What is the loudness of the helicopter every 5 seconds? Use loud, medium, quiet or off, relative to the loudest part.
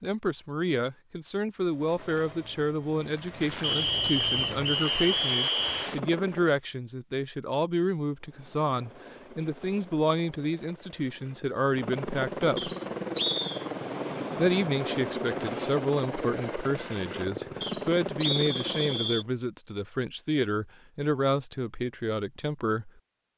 medium, medium, loud, loud, off.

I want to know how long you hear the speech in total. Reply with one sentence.
The speech can be heard for 21 seconds in total.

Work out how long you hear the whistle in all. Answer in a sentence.
You can hear the whistle for 5 seconds altogether.